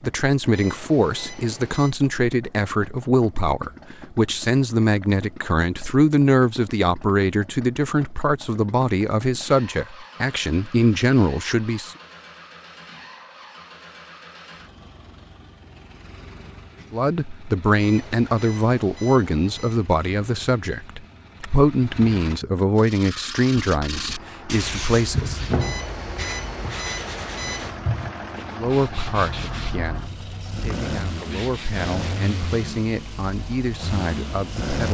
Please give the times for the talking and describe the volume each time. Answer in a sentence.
You can hear the talking from 0.0 to 11.9 s, at a steady volume; from 16.9 to 25.4 s, at a steady volume; and from 28.6 to 34.8 s, getting quieter then louder.